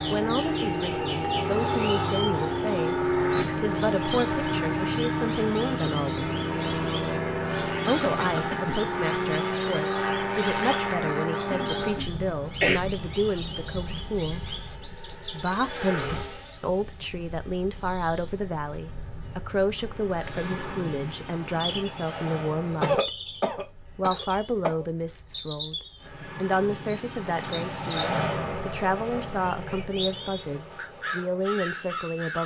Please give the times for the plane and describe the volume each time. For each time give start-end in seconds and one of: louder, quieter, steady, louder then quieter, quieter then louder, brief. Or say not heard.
0.0-23.0 quieter
25.9-32.4 louder then quieter.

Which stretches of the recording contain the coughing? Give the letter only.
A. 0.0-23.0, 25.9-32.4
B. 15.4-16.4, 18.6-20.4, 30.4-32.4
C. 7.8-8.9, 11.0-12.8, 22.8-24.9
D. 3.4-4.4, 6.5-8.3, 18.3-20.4
C.